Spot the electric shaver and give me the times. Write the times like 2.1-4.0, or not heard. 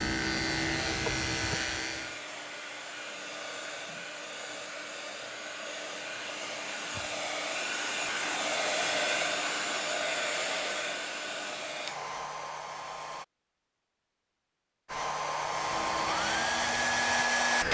0.0-2.2, 15.3-17.4.